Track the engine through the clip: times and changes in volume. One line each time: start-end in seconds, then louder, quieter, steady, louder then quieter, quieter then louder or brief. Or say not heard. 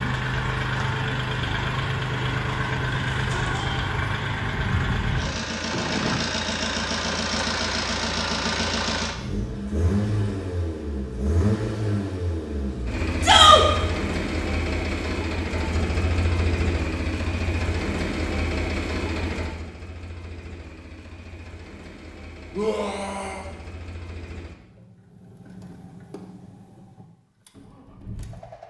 0.0-28.6 quieter.